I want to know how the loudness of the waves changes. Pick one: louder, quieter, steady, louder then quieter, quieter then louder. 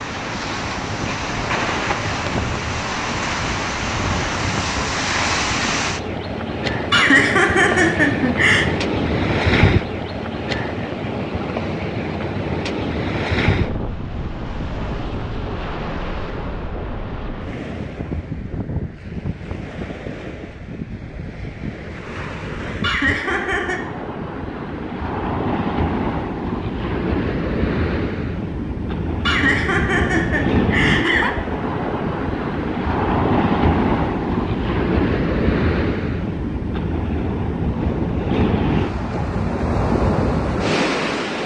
quieter then louder.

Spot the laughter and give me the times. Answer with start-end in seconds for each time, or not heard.
6.9-8.7, 22.8-23.8, 29.2-31.3.